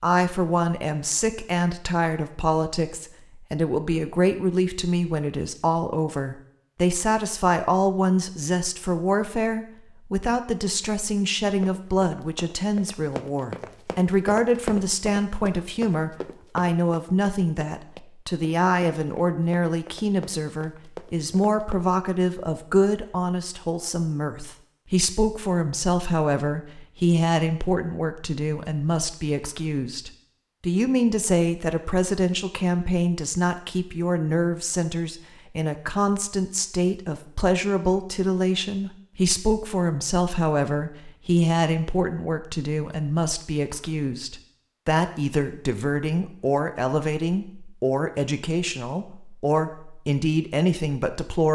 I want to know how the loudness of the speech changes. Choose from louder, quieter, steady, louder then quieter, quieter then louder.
steady.